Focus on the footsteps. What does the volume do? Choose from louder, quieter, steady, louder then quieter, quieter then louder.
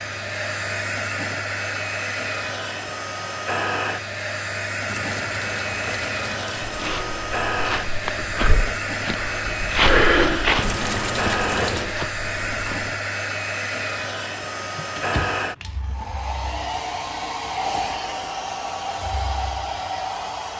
louder then quieter.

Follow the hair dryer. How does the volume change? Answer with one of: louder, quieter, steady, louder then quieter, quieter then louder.
steady.